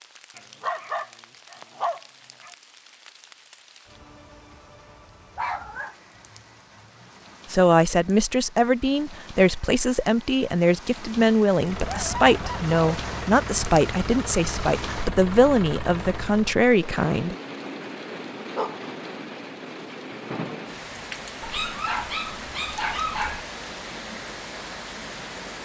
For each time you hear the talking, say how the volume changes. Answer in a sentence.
You can hear the talking from 7.5 to 17.4 s, at a steady volume.